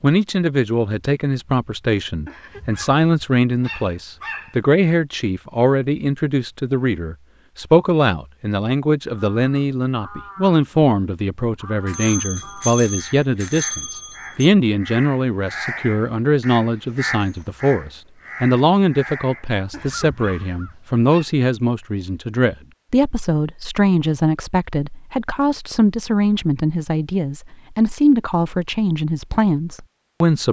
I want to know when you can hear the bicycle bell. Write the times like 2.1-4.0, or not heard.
11.8-14.5.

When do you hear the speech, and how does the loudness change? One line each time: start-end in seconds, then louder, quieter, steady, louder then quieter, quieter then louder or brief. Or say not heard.
0.0-30.4 steady.